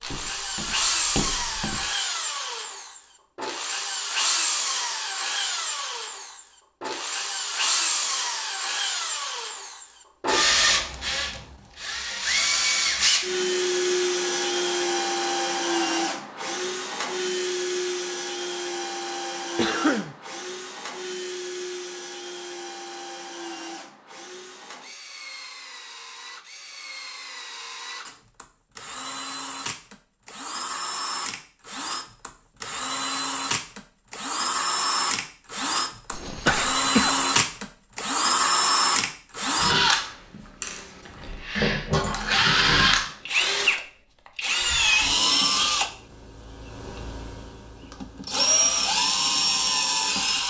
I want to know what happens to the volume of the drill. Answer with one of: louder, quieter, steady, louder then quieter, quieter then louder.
quieter then louder.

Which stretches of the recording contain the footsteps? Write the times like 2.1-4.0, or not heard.
0.0-1.9.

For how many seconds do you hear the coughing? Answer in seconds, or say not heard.
2 s.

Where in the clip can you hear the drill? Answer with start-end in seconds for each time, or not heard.
0.0-50.4.